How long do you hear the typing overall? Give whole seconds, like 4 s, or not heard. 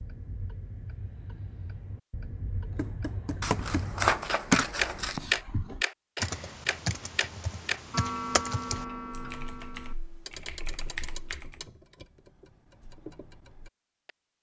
9 s.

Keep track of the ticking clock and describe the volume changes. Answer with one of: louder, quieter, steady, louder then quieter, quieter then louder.
louder then quieter.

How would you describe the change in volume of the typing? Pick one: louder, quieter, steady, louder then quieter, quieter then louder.
quieter.